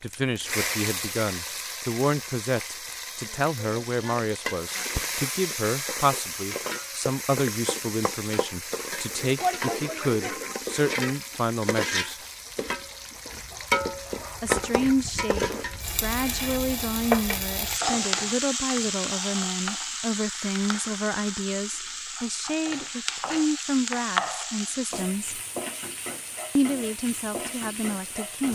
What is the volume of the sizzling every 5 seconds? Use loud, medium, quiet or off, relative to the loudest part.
medium, loud, loud, loud, loud, medium.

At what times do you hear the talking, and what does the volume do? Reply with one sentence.
The talking can be heard from 0.0 to 12.2 s, at a steady volume; from 14.4 to 25.4 s, at a steady volume; and briefly from 26.6 to 28.5 s.